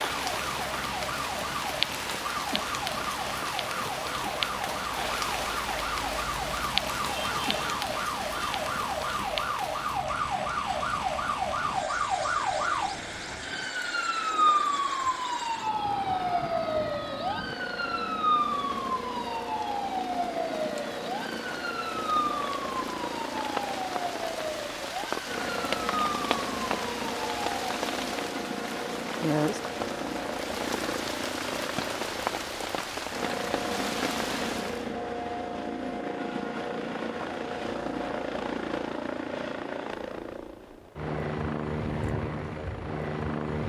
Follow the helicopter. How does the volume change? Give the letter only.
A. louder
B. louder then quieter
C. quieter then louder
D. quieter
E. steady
A.